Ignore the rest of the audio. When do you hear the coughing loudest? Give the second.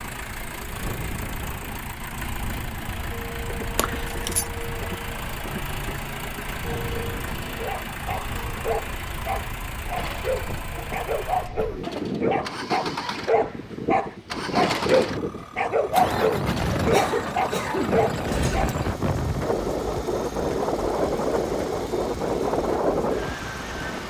17 s.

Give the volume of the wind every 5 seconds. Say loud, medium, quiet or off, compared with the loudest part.
quiet, quiet, medium, loud, loud.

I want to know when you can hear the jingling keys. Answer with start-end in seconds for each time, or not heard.
3.8-4.5.